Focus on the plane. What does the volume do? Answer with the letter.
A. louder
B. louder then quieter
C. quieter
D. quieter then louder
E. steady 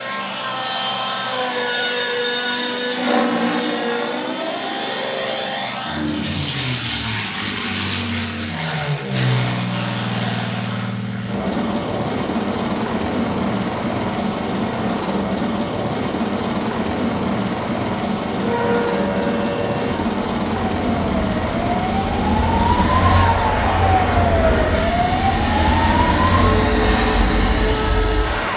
E.